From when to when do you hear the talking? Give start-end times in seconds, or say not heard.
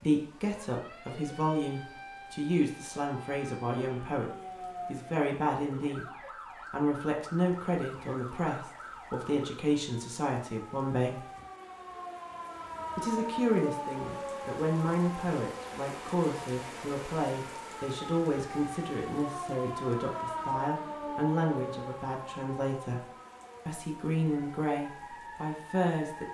0.0-6.0, 6.7-11.2, 12.9-23.1, 23.6-26.2.